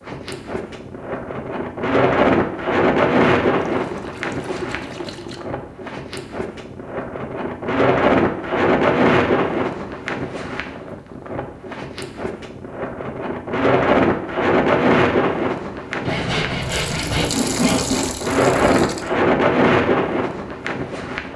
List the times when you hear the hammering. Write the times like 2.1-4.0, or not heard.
not heard.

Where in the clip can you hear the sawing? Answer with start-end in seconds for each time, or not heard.
16.1-18.1.